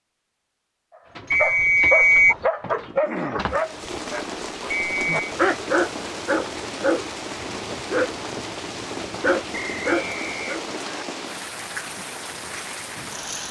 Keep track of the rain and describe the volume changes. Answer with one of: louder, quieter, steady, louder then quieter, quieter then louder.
steady.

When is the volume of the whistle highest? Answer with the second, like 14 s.
2 s.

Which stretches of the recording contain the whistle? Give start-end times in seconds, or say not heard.
1.3-2.4, 4.7-5.2, 9.5-11.1.